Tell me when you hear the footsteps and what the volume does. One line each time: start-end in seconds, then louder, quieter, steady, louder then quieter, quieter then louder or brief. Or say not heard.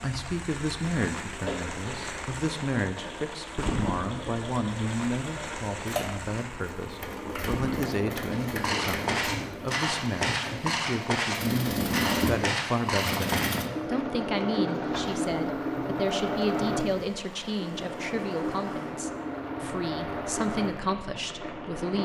8.3-13.6 steady.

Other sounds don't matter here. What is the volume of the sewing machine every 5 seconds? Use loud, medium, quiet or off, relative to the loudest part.
medium, medium, loud, loud, medium.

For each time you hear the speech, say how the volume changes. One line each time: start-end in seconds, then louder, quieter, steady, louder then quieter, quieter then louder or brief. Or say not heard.
0.0-22.0 steady.